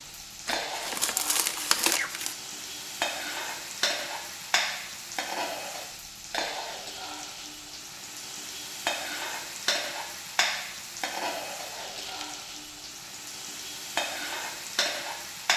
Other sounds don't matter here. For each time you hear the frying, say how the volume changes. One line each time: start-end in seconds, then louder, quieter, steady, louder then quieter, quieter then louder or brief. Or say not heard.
0.0-15.5 steady.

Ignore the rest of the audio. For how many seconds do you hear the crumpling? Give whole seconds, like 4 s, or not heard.
2 s.